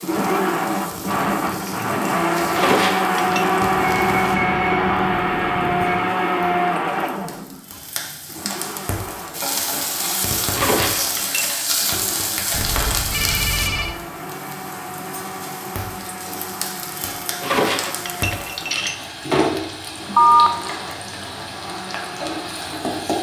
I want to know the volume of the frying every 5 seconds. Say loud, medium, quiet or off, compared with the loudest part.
quiet, medium, loud, loud, loud.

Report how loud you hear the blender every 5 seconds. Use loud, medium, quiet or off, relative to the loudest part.
loud, loud, quiet, quiet, quiet.